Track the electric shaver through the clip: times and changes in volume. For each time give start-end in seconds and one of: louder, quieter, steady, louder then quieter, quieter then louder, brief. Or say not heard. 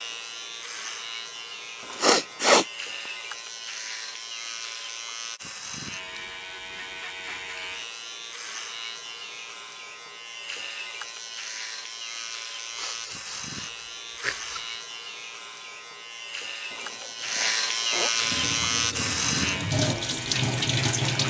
0.0-21.2 louder.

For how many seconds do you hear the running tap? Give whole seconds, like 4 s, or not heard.
3 s.